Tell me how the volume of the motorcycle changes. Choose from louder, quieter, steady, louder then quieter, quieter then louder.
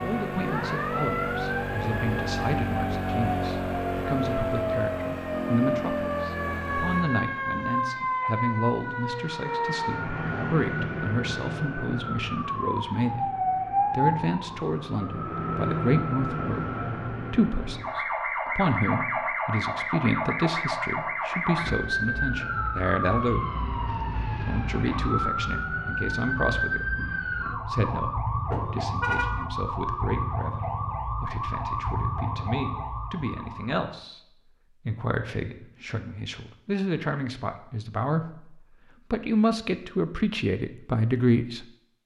steady.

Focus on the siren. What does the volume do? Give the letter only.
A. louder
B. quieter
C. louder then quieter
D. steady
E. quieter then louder
D.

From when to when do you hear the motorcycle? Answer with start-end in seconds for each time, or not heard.
0.0-7.1.